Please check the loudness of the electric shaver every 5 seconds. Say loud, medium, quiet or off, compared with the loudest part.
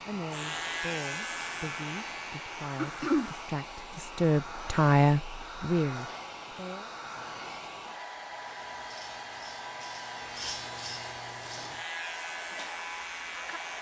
loud, medium, loud.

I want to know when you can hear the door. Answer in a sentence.
You can't hear the door here.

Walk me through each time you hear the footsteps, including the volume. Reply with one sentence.
You can't hear the footsteps here.